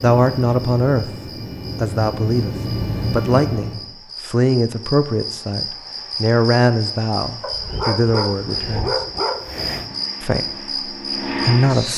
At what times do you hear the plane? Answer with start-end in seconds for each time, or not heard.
0.0-3.9, 9.2-11.9.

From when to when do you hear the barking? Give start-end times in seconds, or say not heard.
7.4-9.9.